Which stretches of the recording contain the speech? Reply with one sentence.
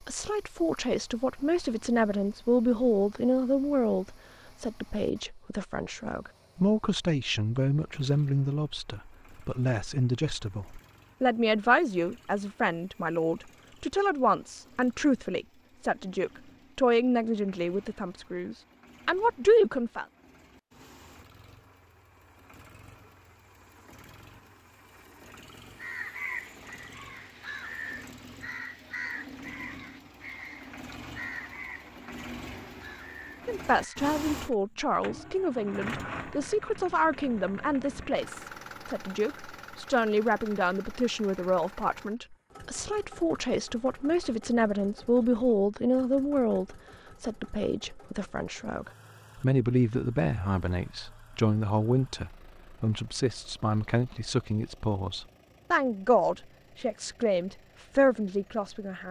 The speech can be heard from 0.1 to 20.1 s and from 33.5 to 59.0 s.